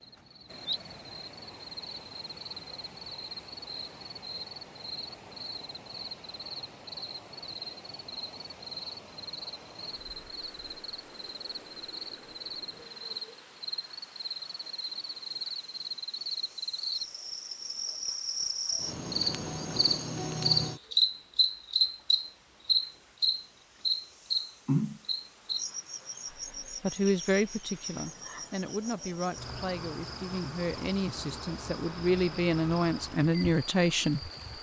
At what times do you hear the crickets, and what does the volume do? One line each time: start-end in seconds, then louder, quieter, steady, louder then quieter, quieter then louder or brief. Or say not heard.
0.0-34.5 louder then quieter.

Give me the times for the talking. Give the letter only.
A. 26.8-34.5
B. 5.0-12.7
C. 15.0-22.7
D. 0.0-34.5
A.